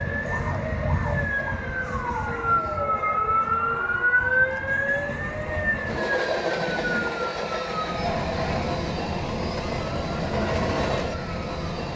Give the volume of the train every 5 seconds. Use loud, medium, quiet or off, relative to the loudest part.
medium, loud, loud.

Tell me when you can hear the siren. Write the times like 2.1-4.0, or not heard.
0.0-11.9.